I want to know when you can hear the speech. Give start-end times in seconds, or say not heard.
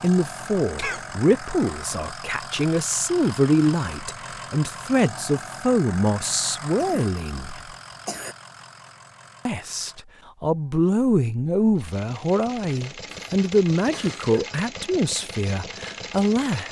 0.0-7.6, 9.4-16.6.